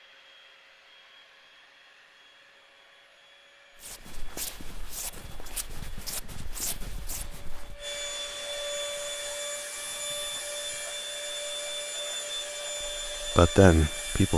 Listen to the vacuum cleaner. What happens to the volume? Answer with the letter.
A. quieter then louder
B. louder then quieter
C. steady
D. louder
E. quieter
D.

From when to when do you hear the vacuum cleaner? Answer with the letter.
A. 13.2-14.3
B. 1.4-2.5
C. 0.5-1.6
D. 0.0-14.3
D.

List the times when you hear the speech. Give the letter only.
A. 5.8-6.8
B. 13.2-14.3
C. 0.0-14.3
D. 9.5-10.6
B.